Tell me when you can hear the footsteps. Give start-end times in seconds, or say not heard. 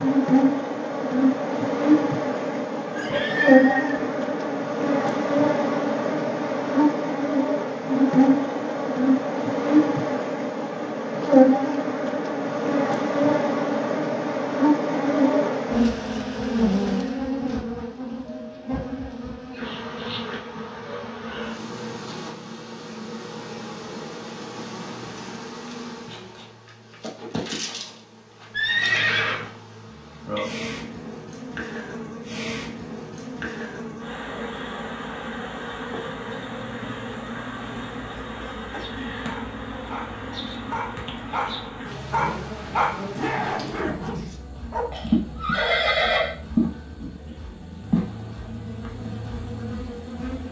not heard.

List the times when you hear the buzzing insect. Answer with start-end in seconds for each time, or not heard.
0.0-50.4.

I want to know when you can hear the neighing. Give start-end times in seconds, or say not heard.
3.0-4.0, 28.5-29.5, 44.9-46.3.